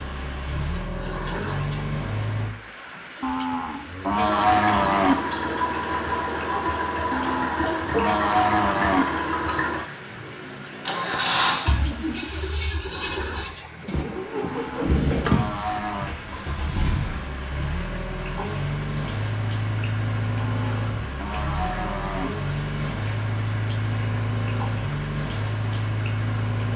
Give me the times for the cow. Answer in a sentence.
You can hear the cow from 3.2 to 5.2 s, from 7.1 to 9.1 s, from 14.4 to 16.1 s and from 20.4 to 22.3 s.